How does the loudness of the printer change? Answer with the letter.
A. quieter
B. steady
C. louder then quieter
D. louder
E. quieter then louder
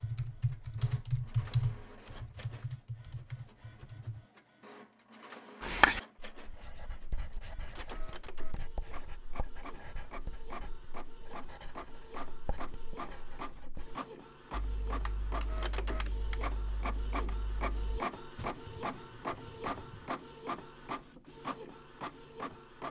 D.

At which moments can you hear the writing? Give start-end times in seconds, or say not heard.
5.6-13.9.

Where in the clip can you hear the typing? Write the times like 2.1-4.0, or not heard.
0.0-4.2, 14.5-20.1.